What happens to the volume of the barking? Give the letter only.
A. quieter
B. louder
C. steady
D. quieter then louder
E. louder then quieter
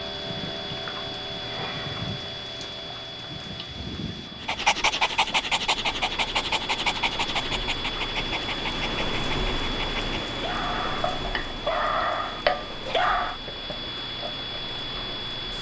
D.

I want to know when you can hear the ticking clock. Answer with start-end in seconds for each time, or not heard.
0.0-15.5.